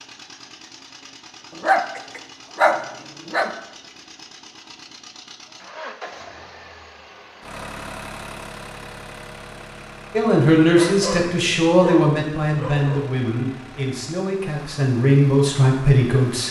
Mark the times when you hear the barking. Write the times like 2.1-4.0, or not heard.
1.6-3.5, 10.7-13.2.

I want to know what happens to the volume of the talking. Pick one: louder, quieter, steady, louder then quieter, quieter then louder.
quieter then louder.